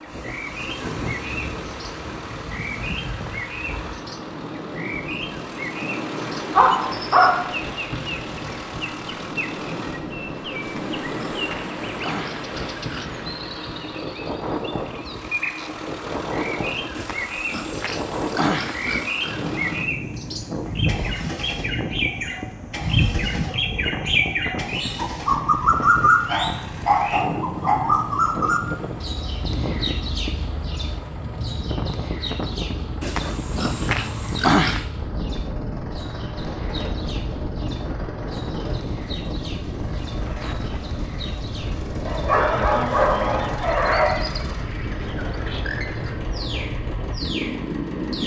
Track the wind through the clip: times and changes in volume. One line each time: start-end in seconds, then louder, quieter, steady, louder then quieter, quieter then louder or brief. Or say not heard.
0.0-48.2 steady.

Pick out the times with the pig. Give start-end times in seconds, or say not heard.
10.6-13.1, 16.9-19.4, 33.0-34.9.